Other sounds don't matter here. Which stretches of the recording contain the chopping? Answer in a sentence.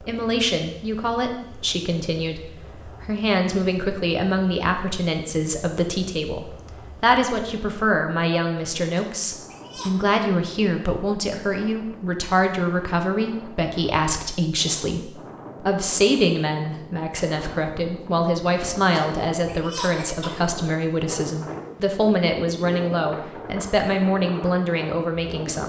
The chopping can't be heard in this clip.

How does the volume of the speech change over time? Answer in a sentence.
The loudness of the speech stays about the same.